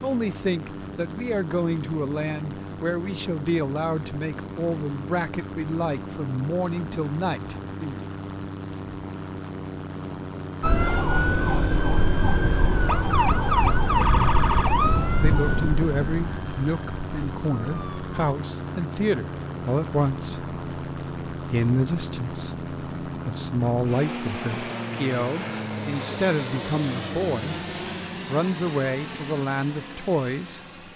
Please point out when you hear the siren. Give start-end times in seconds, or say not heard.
10.6-18.1.